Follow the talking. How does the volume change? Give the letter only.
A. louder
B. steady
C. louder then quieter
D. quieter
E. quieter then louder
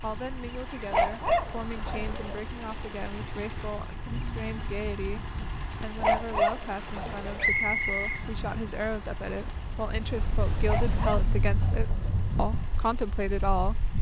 A.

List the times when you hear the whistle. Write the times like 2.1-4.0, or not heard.
7.3-8.2.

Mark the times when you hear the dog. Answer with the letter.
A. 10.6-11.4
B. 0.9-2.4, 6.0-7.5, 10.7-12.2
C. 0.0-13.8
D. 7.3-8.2
B.